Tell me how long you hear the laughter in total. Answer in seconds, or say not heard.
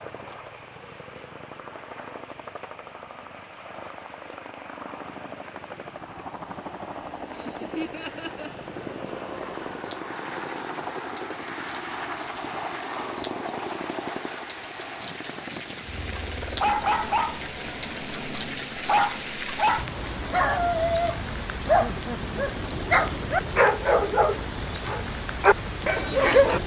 2 s.